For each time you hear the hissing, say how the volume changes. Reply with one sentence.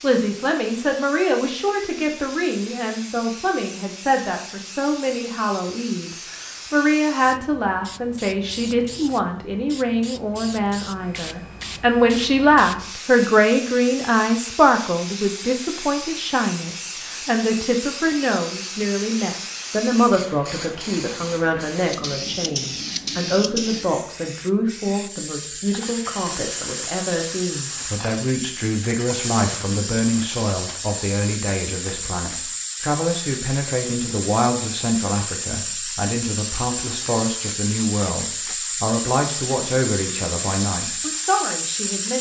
You can hear the hissing from 0.0 to 42.1 s, getting louder.